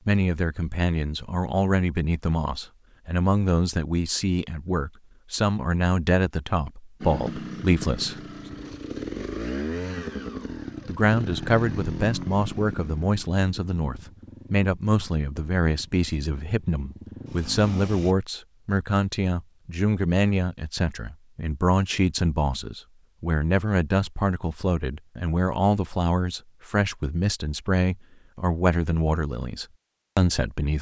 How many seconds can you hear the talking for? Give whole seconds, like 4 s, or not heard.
28 s.